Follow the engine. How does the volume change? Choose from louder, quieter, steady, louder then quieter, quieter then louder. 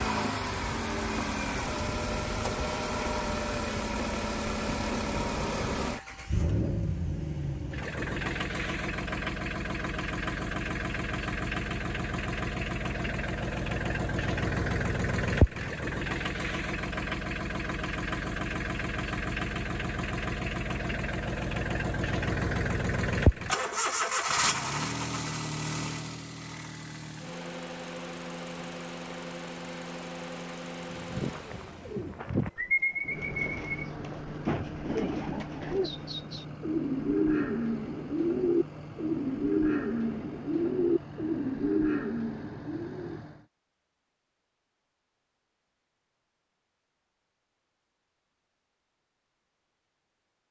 quieter.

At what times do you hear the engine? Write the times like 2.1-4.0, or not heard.
0.0-43.5.